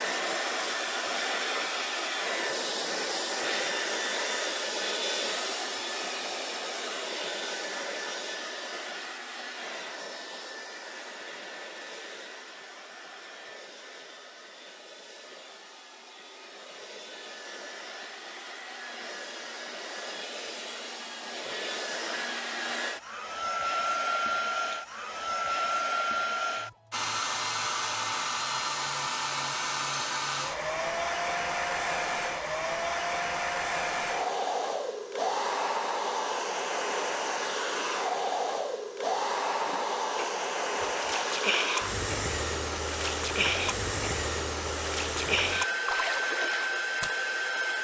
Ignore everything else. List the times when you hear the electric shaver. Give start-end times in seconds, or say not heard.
not heard.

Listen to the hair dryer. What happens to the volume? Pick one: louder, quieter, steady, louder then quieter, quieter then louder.
quieter then louder.